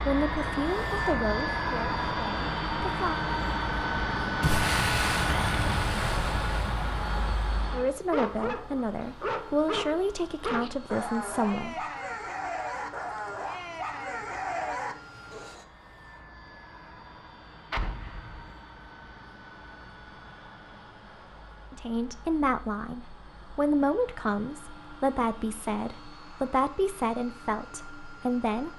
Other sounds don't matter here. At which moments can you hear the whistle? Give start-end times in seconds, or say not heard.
not heard.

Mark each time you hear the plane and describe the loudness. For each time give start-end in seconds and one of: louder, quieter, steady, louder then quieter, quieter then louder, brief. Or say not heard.
0.0-28.7 quieter.